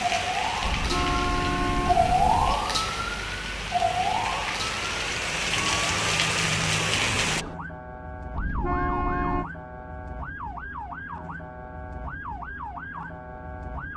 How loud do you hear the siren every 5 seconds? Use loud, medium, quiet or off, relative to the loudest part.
loud, medium, medium.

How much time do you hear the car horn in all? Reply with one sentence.
You can hear the car horn for 3 seconds altogether.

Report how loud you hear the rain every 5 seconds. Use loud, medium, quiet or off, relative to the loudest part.
medium, loud, off.